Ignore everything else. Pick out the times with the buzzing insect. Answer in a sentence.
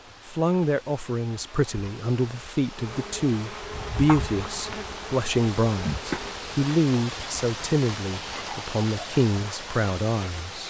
The buzzing insect can be heard from 2.7 to 6.5 s.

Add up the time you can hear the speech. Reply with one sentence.
You can hear the speech for 10 seconds altogether.